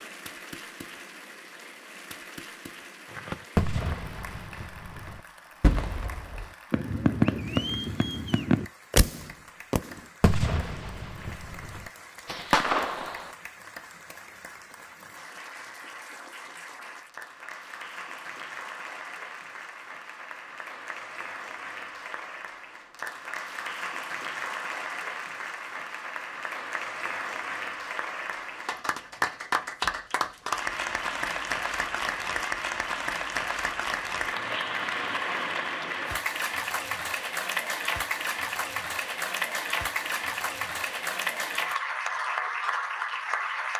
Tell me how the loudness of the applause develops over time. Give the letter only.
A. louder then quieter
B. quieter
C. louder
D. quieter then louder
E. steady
C.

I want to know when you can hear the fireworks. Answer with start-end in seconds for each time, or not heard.
3.1-13.3.